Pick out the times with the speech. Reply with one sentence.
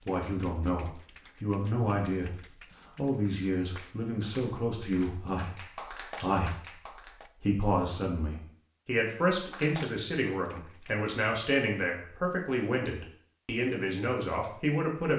You can hear the speech from 0.1 to 2.4 s, from 3.0 to 6.8 s and from 7.4 to 15.1 s.